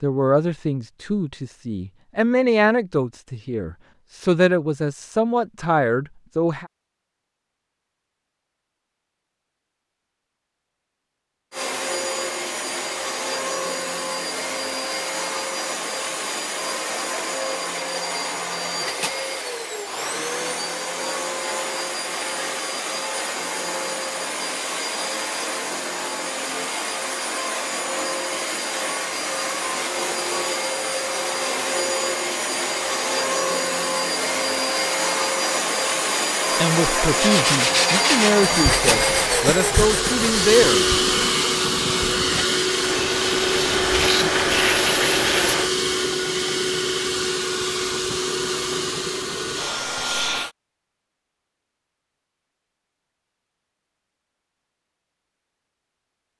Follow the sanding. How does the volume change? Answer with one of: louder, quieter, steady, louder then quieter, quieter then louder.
quieter then louder.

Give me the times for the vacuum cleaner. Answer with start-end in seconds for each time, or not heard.
11.5-50.5.